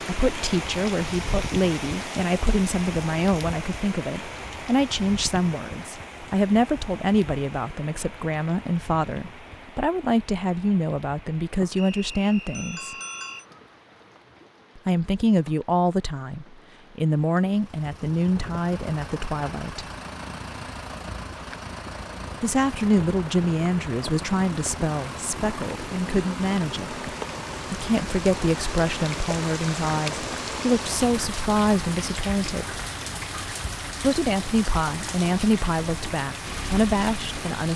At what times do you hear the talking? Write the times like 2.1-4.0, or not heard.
0.0-12.9, 14.8-19.9, 22.4-27.1, 27.7-32.8, 34.0-37.7.